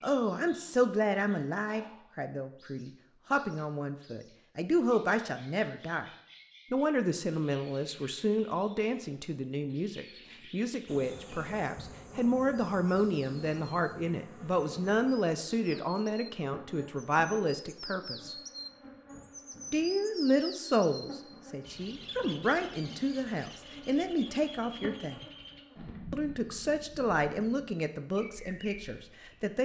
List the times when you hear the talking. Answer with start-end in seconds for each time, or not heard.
0.0-6.0, 6.7-18.4, 19.7-25.2, 26.1-29.5.